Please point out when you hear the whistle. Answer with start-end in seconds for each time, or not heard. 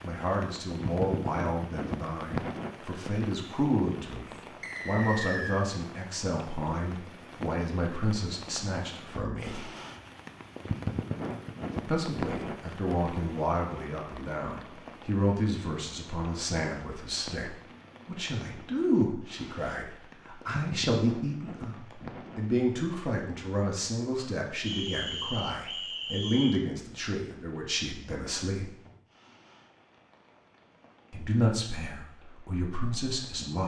4.6-5.7, 24.6-26.6.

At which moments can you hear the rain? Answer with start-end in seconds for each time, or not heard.
0.0-33.5.